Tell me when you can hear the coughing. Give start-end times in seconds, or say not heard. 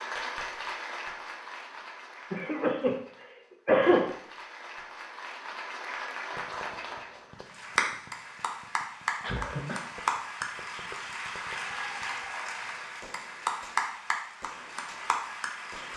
2.3-4.0, 9.2-9.8.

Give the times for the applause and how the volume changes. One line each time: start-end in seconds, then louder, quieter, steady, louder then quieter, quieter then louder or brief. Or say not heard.
0.0-15.9 louder.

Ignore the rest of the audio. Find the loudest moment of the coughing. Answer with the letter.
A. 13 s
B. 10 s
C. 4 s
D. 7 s
C.